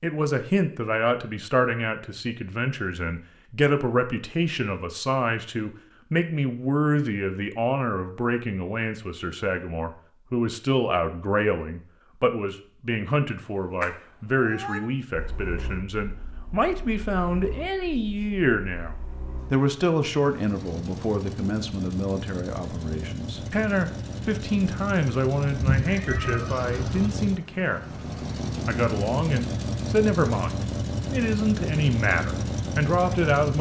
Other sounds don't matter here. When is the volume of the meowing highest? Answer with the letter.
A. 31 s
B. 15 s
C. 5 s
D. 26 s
D.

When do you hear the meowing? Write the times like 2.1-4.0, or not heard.
13.8-14.8, 25.6-27.1.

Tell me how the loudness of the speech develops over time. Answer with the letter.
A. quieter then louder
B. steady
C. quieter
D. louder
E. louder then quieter
B.